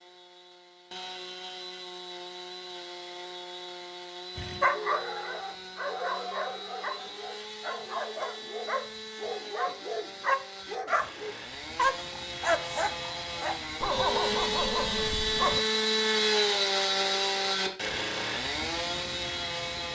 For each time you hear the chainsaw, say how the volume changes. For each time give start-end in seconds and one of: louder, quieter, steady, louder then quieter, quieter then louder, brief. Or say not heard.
0.0-19.9 louder.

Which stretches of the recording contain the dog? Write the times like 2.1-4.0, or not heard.
4.3-15.6.